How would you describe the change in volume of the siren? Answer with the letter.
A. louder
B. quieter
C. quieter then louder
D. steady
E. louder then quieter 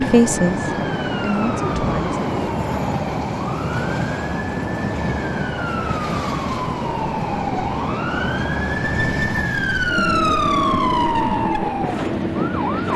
A.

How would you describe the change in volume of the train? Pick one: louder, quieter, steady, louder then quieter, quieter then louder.
steady.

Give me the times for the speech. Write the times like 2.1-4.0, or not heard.
0.0-2.2.